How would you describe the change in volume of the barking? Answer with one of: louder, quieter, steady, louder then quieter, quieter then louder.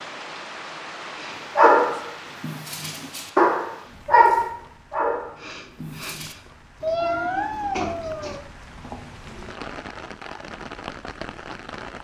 louder then quieter.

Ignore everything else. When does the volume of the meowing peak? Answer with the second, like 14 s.
7 s.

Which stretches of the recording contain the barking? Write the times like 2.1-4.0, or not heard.
1.6-6.3.